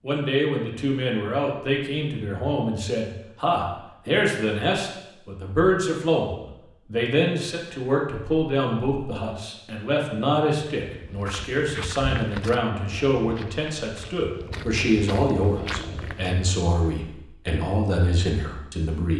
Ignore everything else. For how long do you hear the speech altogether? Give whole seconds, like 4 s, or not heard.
19 s.